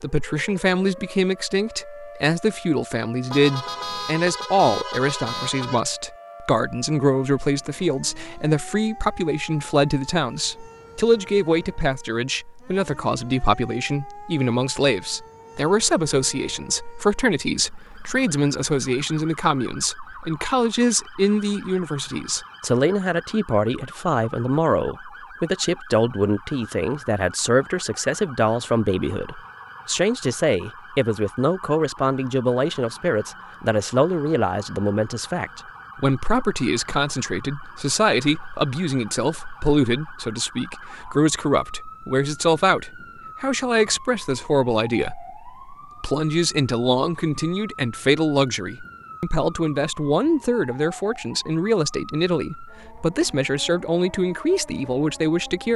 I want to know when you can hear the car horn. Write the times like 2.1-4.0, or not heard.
3.3-5.8.